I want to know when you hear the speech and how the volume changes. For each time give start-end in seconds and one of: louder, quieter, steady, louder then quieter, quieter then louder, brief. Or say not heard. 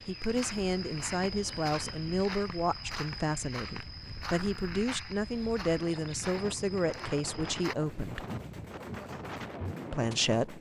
0.1-8.2 steady
9.9-10.5 brief.